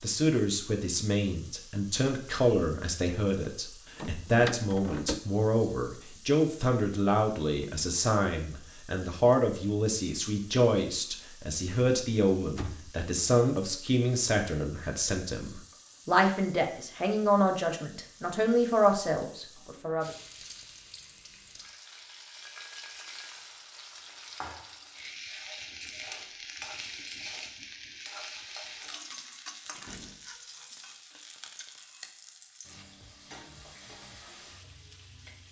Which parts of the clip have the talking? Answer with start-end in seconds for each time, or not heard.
0.0-20.1.